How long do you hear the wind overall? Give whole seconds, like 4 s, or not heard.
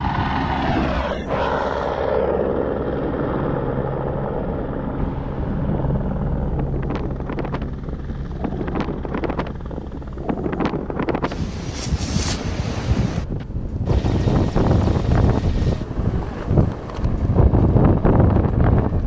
14 s.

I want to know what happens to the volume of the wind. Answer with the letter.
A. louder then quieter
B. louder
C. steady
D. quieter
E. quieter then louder
B.